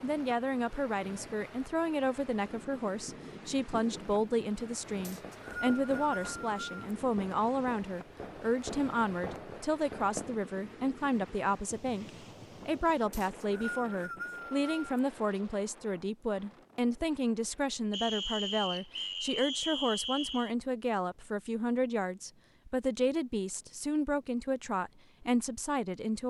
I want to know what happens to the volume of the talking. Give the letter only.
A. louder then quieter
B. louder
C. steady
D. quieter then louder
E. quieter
C.